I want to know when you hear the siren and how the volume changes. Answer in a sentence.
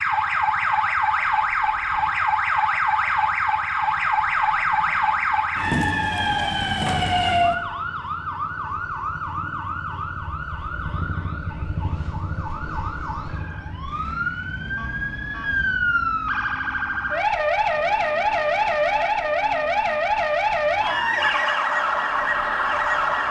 You can hear the siren from 0.0 to 23.2 s, getting quieter then louder.